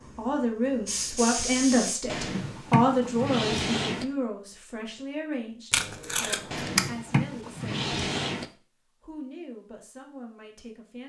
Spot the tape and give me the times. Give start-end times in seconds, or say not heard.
5.7-6.9.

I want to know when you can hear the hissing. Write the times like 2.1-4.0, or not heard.
0.0-2.0.